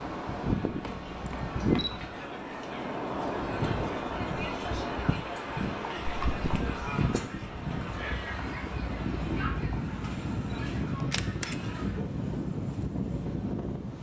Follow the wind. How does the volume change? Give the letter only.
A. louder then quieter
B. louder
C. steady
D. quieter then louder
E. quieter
C.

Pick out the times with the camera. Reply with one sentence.
The camera can be heard from 0.8 to 2.1 s, from 6.0 to 6.5 s and from 11.1 to 11.6 s.